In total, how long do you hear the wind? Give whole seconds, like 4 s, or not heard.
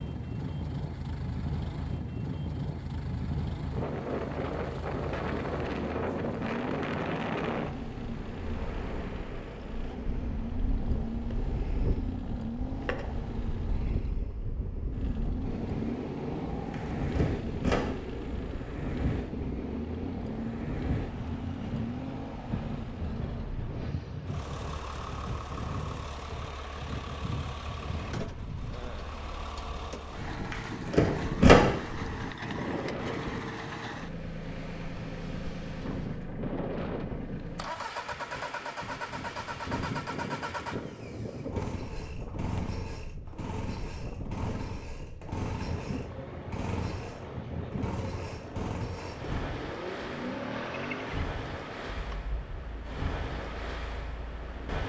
55 s.